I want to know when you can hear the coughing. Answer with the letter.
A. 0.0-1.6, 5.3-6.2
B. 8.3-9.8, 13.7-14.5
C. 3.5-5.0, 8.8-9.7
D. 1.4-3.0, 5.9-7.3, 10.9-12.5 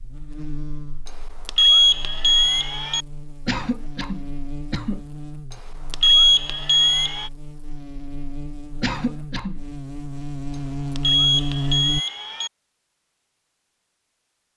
C.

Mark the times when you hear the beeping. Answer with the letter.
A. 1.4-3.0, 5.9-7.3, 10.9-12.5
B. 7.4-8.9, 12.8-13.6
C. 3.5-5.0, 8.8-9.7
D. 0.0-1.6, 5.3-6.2
A.